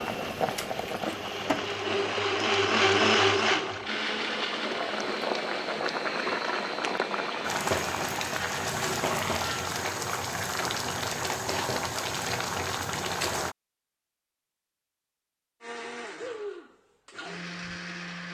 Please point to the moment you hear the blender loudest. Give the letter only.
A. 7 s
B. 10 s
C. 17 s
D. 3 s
D.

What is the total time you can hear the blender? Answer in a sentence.
You can hear the blender for 13 seconds altogether.